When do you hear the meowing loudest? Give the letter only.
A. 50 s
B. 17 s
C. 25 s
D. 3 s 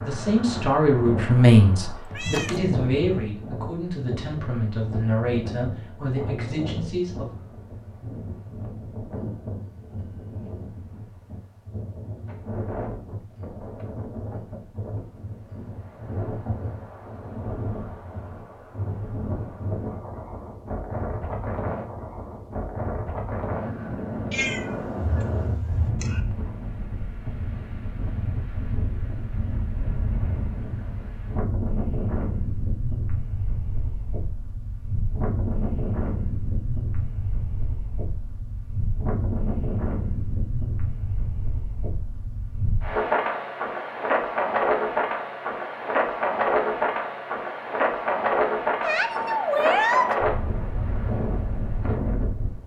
A.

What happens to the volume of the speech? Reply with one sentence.
The volume of the speech goes down.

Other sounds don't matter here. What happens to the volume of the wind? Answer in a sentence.
The loudness of the wind goes up.